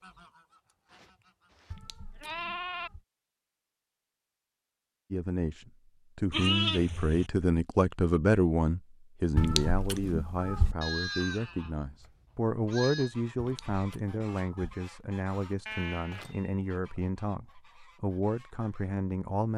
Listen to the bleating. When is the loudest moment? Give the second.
7 s.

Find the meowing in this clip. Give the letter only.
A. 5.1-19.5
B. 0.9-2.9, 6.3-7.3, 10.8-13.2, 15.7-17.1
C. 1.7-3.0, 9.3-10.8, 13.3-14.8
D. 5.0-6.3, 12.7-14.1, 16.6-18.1
C.